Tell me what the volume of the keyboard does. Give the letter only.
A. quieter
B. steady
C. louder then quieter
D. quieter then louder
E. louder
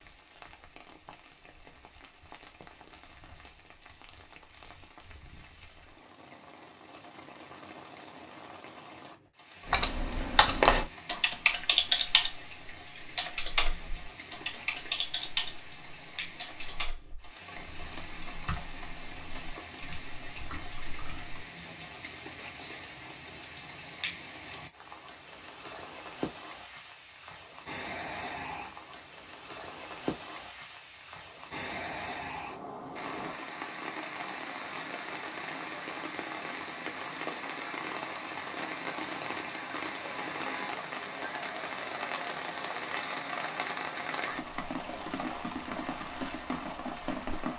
A.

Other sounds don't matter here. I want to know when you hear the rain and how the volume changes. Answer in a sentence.
The rain can be heard from 0.0 to 47.5 s, getting louder.